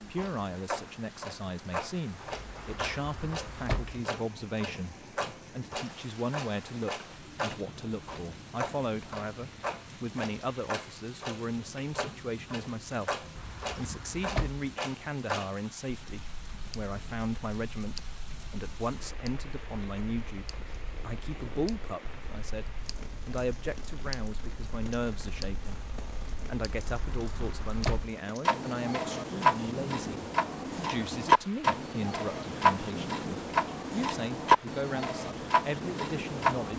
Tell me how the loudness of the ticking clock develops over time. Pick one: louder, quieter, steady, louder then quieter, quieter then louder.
louder.